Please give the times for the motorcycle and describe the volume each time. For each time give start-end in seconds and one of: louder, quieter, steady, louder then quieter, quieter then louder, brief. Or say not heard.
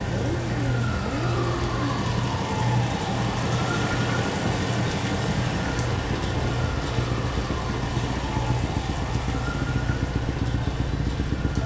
0.0-11.6 steady.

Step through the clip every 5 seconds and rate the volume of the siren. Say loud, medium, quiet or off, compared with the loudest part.
loud, loud, medium.